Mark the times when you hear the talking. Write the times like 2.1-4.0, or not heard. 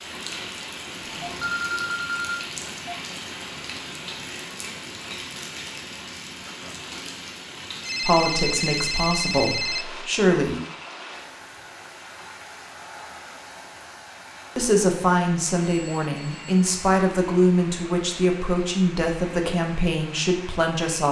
8.0-10.6, 14.6-21.0.